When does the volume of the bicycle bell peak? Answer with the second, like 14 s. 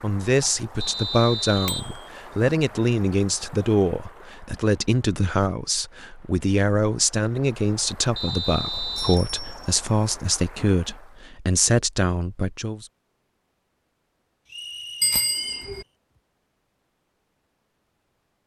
15 s.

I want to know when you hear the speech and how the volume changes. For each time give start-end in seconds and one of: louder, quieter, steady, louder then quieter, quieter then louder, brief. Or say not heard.
0.0-12.8 steady.